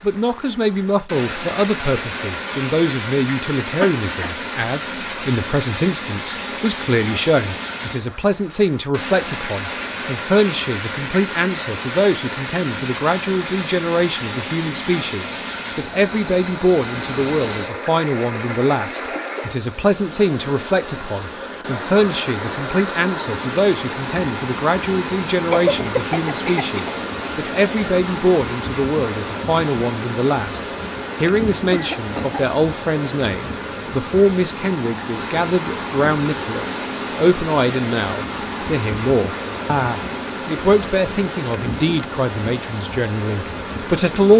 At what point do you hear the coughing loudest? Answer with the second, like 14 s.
26 s.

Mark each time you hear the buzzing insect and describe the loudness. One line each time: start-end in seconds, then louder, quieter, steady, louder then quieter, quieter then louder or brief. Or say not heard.
not heard.